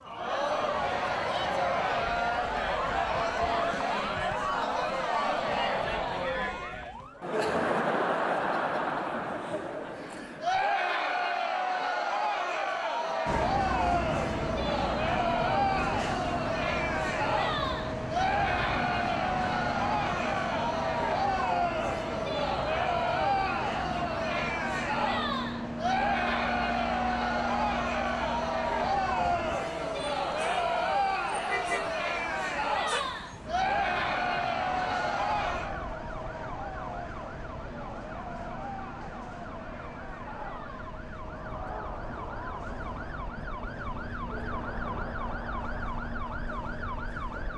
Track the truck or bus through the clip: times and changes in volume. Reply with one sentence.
You can hear the truck or bus from 13.2 to 47.5 s, getting quieter.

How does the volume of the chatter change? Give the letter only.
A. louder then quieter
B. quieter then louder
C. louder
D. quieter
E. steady
D.